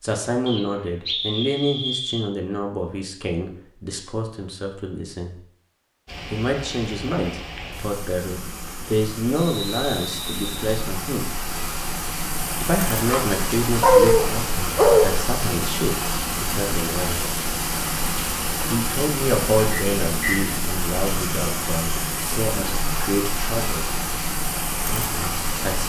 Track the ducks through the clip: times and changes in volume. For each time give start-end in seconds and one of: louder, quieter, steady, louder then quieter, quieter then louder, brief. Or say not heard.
not heard.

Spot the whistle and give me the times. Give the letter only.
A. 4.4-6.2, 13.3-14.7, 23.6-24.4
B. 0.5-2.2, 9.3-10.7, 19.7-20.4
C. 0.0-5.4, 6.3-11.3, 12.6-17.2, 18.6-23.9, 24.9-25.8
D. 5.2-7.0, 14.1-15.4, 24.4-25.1
B.